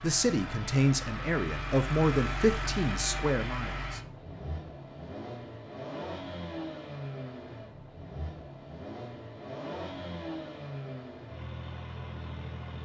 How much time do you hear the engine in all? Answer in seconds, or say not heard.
13 s.